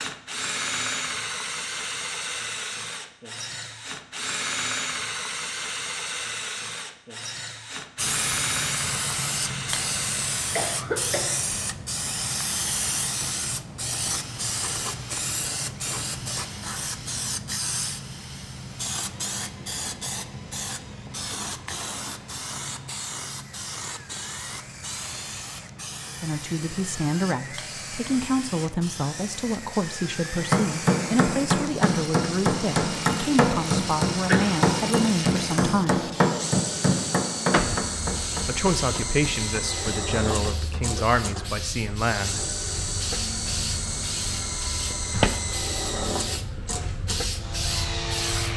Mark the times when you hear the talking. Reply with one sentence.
The talking can be heard from 26.2 to 36.1 s and from 38.4 to 42.5 s.